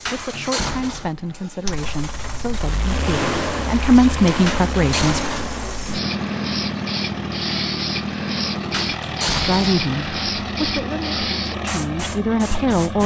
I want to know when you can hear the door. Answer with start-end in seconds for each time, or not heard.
0.1-1.1, 4.5-5.3, 8.7-9.7.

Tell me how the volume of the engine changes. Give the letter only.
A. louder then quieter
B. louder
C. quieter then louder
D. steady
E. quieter
D.